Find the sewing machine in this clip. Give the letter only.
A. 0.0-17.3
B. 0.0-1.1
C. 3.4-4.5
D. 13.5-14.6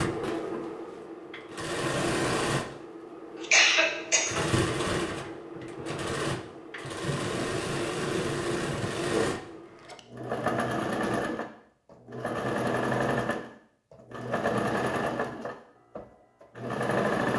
A.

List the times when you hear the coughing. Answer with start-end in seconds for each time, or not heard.
3.4-4.5.